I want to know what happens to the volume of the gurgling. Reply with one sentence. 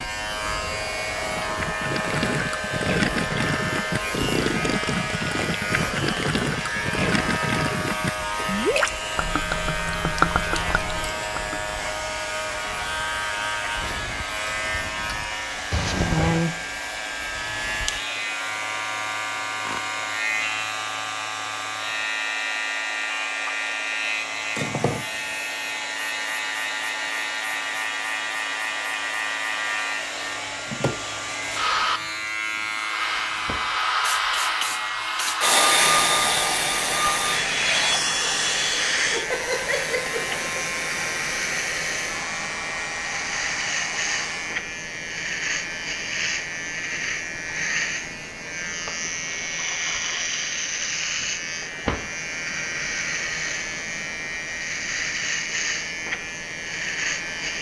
The volume of the gurgling stays about the same.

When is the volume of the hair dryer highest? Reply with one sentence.
The loudest moment of the hair dryer is at 36 seconds.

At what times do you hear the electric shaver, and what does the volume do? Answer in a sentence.
The electric shaver can be heard from 0.0 to 57.5 s, at a steady volume.